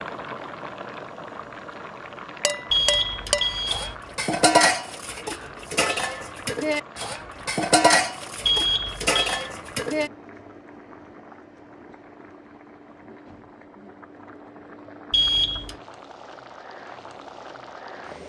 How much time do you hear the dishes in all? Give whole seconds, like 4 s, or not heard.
8 s.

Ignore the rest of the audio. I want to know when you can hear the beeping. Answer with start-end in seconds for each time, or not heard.
2.7-4.0, 8.4-9.4, 15.1-15.8.